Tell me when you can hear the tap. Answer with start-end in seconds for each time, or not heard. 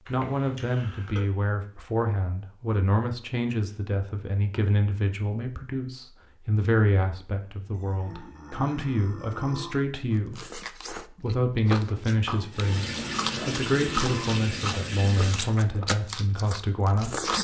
12.5-15.6.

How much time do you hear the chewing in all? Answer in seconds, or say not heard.
7 s.